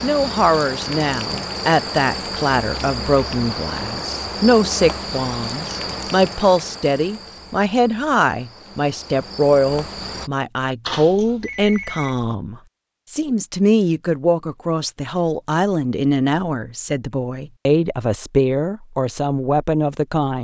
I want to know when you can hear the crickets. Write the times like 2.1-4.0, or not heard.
0.0-10.3.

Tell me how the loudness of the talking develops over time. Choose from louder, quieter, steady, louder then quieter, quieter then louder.
steady.